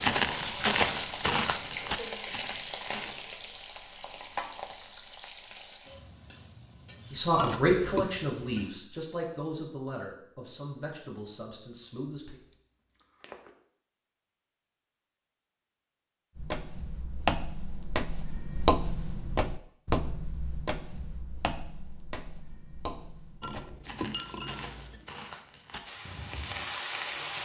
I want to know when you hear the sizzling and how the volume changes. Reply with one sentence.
The sizzling can be heard from 0.0 to 8.7 s, getting quieter; and briefly from 25.9 to 27.4 s.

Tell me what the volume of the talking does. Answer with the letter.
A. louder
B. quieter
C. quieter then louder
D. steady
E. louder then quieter
B.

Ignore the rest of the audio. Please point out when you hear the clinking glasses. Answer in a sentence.
The clinking glasses can be heard from 7.3 to 8.2 s and from 23.4 to 25.1 s.